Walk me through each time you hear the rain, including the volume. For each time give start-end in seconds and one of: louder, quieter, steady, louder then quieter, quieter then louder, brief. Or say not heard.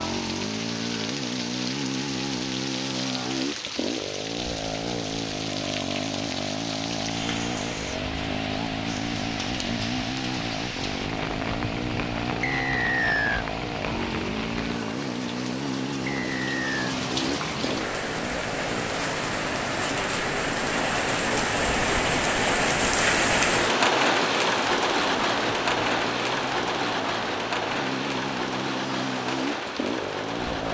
0.0-30.6 louder.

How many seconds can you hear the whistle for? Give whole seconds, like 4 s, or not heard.
2 s.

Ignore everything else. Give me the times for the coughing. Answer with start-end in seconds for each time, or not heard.
not heard.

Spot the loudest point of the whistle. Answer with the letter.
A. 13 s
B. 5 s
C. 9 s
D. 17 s
A.